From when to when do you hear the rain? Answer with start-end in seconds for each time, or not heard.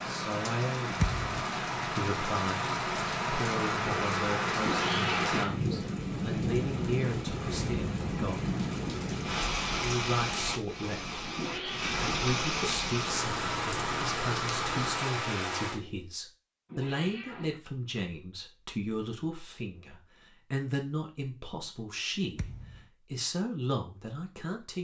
0.0-15.8.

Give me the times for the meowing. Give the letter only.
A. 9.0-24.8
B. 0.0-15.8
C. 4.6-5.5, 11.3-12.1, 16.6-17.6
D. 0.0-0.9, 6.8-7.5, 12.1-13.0
C.